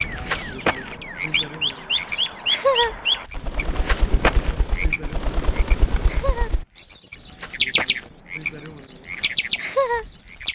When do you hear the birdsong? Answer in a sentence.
The birdsong can be heard from 0.0 to 10.5 s.